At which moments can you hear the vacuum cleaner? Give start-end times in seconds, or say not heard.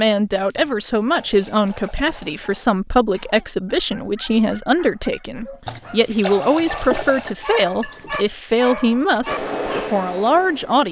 9.2-10.8.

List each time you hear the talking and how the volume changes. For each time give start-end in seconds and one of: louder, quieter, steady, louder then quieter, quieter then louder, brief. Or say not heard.
0.0-10.8 steady.